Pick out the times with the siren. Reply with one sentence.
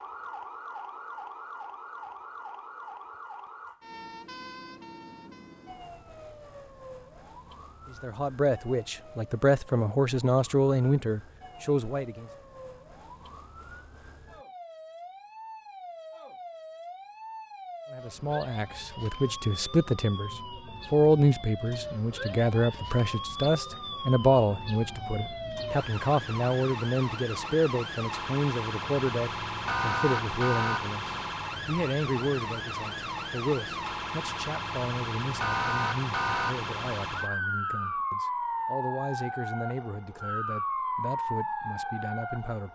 The siren can be heard from 0.0 to 42.7 s.